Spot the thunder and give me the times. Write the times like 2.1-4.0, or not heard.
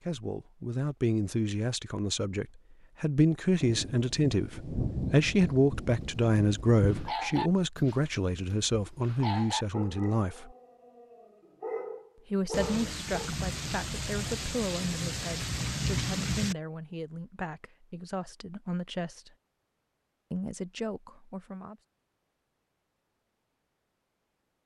3.6-7.2, 12.5-16.6.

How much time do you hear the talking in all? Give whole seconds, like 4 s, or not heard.
19 s.